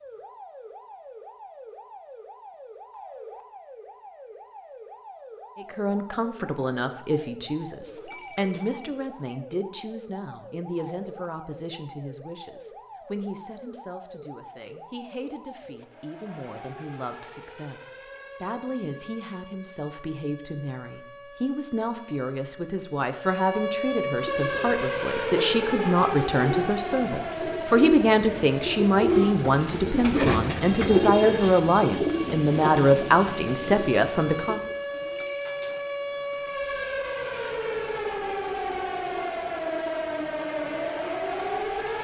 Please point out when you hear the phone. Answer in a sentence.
You can hear the phone from 7.8 to 9.4 s and from 34.9 to 37.0 s.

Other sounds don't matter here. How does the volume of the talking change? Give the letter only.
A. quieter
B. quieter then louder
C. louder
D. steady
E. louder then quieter
B.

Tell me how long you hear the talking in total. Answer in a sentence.
You can hear the talking for 29 seconds altogether.